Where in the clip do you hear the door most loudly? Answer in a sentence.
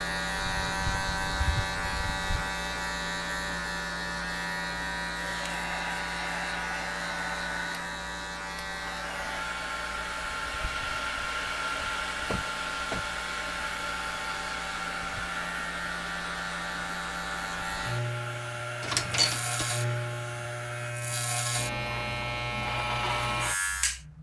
The volume of the door peaks at 19 seconds.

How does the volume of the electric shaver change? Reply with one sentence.
The volume of the electric shaver goes down, then up.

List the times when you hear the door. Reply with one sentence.
You can hear the door from 1.4 to 2.0 s, from 12.2 to 13.1 s and from 18.8 to 19.6 s.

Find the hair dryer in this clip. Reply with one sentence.
You can hear the hair dryer from 5.2 to 21.0 s.